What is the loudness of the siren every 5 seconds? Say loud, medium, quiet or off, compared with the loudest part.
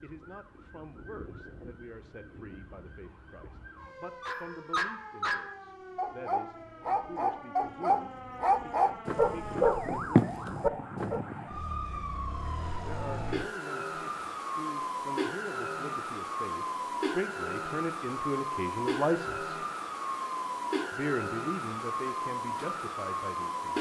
quiet, medium, loud, loud, loud.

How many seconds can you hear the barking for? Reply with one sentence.
You can hear the barking for 7 seconds altogether.